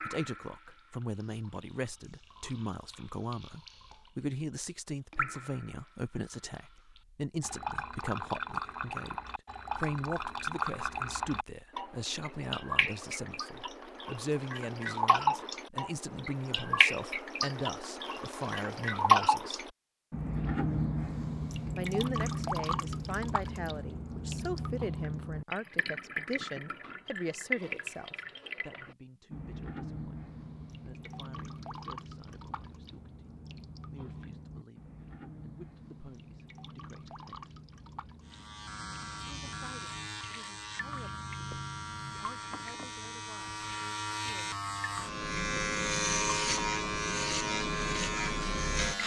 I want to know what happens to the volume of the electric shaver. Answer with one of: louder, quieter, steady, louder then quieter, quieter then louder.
louder.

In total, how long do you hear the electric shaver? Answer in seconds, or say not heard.
11 s.